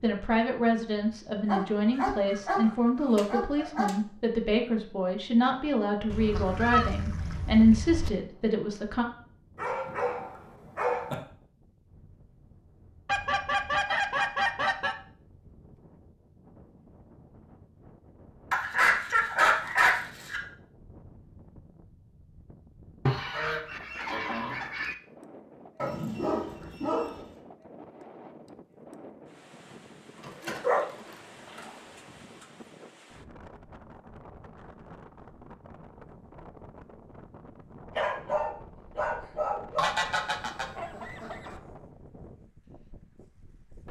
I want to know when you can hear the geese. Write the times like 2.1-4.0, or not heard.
6.0-8.1, 13.1-14.9, 23.1-24.9, 39.8-41.6.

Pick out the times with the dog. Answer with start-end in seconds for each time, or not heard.
1.4-3.9, 9.6-11.2, 18.5-20.4, 25.8-27.2, 30.2-30.8, 38.0-39.9.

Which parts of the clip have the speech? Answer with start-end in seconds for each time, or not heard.
0.0-9.1.